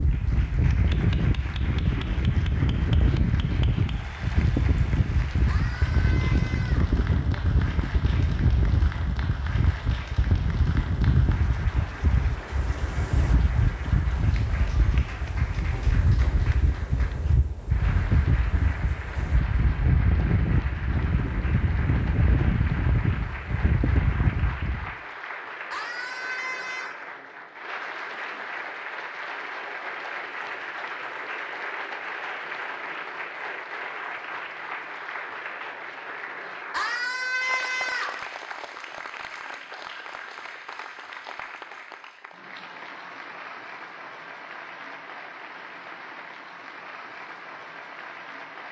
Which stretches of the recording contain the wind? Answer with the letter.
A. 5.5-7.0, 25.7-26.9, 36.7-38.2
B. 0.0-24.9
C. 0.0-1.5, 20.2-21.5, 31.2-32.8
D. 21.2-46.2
B.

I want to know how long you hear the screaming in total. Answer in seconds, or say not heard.
4 s.